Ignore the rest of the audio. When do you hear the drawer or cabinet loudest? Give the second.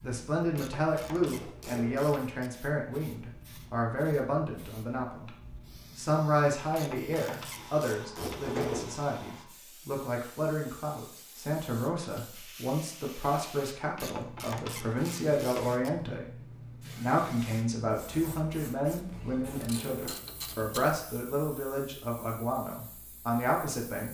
9 s.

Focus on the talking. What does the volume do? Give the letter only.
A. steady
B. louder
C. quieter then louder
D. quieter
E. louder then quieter
A.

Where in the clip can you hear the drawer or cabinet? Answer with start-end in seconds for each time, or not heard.
1.4-2.1, 8.2-9.0, 19.6-20.4.